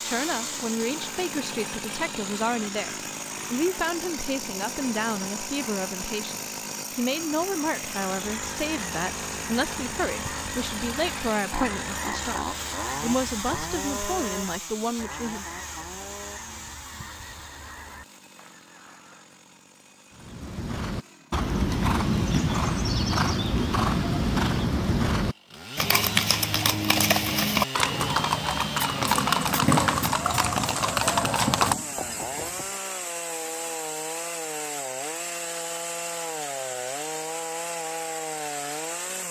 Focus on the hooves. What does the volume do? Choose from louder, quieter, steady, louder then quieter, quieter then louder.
steady.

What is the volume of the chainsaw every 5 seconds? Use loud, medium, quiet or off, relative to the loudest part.
loud, loud, loud, medium, quiet, loud, loud, loud.